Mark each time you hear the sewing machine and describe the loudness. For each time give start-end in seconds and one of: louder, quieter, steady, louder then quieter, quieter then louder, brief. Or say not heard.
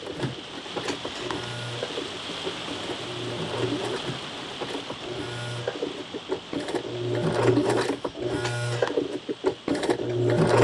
0.0-10.5 louder.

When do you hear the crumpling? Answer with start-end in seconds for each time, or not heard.
0.8-1.5, 8.4-9.1.